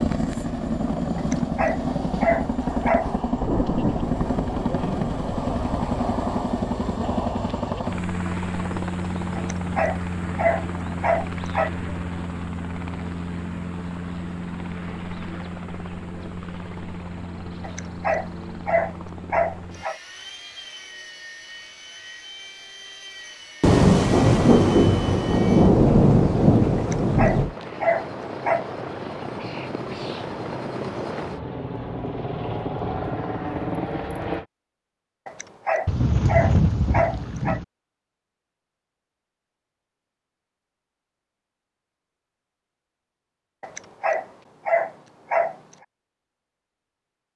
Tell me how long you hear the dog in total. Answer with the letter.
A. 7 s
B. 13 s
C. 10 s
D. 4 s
B.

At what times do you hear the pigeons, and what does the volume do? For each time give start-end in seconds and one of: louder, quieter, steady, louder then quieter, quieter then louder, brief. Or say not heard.
not heard.